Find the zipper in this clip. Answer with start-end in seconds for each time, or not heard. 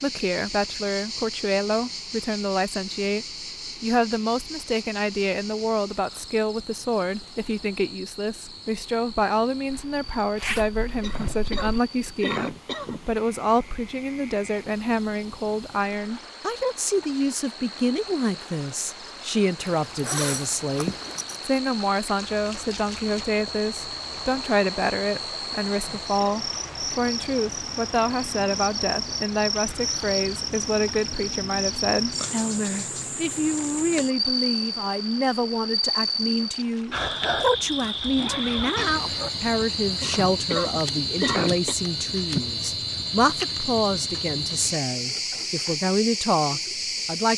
9.7-11.8, 19.6-21.4, 38.1-39.3.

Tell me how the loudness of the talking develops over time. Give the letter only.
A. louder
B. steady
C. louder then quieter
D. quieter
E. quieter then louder
B.